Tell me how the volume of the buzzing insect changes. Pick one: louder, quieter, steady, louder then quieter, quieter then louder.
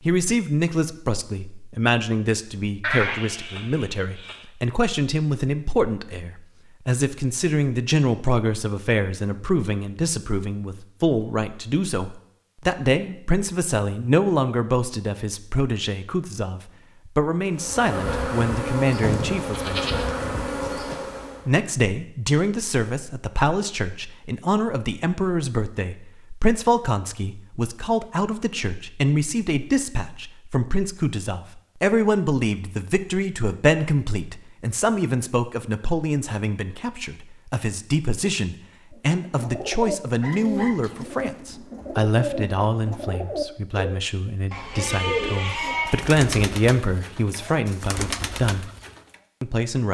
steady.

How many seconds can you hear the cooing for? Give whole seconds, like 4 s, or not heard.
10 s.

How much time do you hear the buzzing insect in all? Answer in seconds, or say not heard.
4 s.